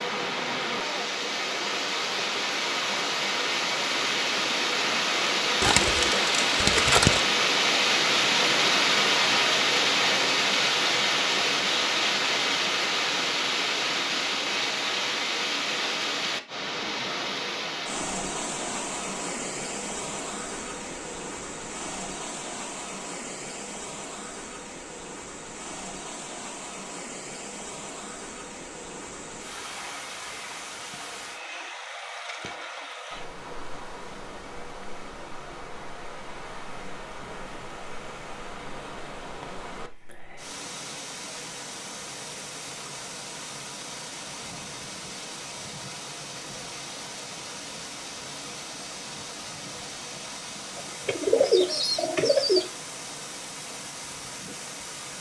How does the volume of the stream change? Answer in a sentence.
The loudness of the stream goes down.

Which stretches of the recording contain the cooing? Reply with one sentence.
You can hear the cooing from 5.6 to 7.2 s and from 50.8 to 52.6 s.